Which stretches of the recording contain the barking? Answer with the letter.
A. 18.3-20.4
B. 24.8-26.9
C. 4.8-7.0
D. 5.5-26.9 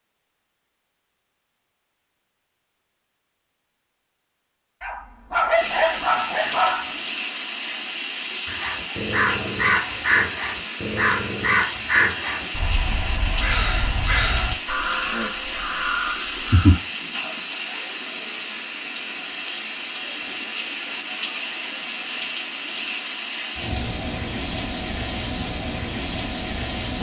C.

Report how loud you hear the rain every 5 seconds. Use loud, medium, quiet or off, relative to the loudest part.
off, loud, loud, loud, loud, loud.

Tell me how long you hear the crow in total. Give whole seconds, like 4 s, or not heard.
8 s.